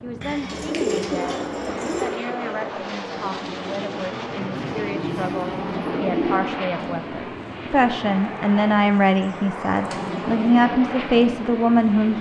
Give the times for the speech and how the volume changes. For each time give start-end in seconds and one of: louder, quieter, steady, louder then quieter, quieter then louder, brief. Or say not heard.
0.0-12.1 louder.